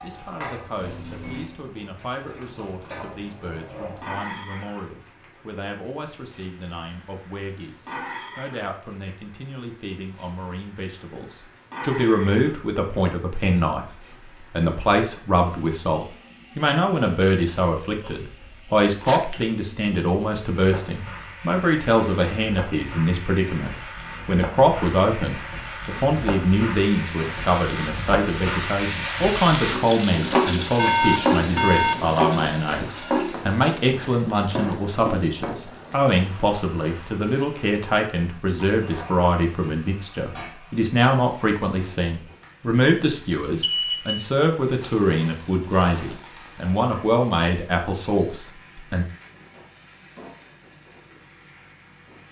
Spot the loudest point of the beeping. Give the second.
31 s.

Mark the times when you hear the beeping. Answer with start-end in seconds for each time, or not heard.
0.8-1.6, 30.8-32.2, 43.6-44.2.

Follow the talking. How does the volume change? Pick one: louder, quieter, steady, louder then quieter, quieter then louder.
louder.